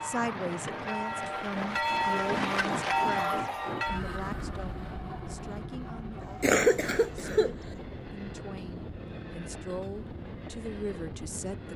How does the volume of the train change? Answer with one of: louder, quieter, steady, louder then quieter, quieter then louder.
quieter.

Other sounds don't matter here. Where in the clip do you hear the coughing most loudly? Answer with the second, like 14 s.
7 s.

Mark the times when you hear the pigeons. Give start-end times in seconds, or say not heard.
not heard.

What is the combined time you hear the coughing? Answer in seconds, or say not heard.
2 s.